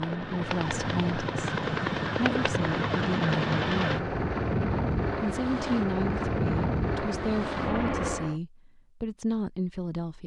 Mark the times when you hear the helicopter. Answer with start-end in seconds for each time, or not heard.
0.0-8.4.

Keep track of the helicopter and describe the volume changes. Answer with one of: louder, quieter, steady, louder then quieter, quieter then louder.
steady.